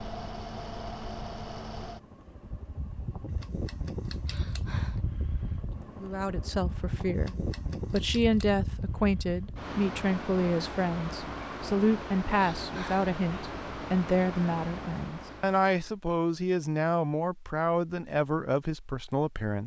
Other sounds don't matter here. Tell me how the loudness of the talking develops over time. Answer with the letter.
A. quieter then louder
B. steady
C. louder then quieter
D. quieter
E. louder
B.